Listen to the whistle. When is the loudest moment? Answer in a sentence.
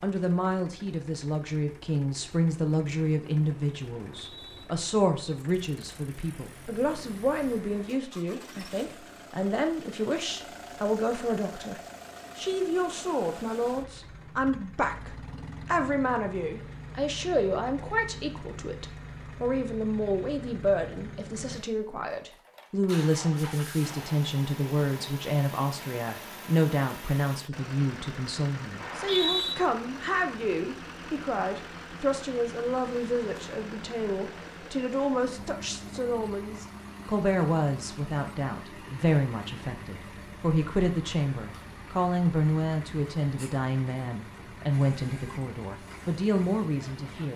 The loudest moment of the whistle is at 29 seconds.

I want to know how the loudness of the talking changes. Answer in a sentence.
The volume of the talking stays about the same.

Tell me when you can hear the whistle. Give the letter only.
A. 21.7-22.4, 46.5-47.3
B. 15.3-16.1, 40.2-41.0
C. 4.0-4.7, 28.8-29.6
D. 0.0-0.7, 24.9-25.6
C.